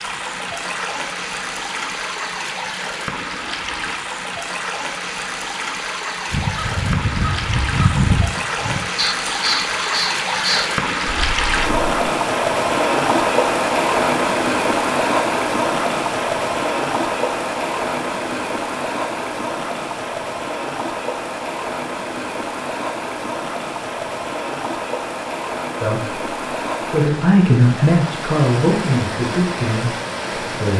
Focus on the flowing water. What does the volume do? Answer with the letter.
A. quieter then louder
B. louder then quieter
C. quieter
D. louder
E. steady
B.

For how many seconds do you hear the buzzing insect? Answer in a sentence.
You can't hear the buzzing insect here.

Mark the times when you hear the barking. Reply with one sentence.
You can't hear the barking here.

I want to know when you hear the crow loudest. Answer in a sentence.
The volume of the crow peaks at 8 seconds.